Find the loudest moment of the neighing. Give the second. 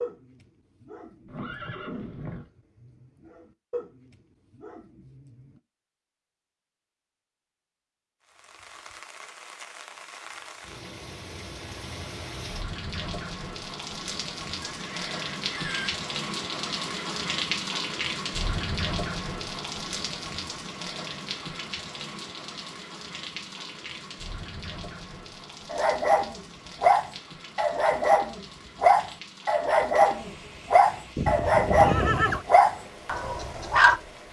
32 s.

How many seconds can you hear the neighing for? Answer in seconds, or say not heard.
4 s.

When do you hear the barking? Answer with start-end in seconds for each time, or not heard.
0.0-5.6, 25.7-34.0.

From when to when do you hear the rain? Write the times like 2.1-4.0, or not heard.
8.2-34.2.